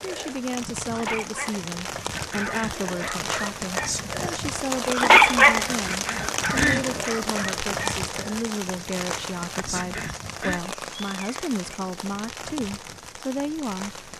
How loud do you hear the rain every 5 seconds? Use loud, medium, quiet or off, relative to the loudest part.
loud, loud, medium.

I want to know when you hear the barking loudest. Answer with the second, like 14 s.
5 s.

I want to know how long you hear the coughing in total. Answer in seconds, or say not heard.
3 s.